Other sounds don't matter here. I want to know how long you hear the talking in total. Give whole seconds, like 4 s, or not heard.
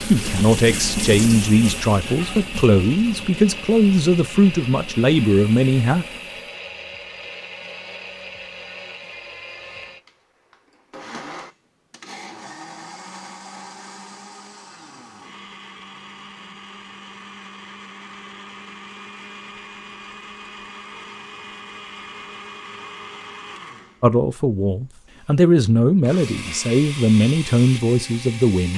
11 s.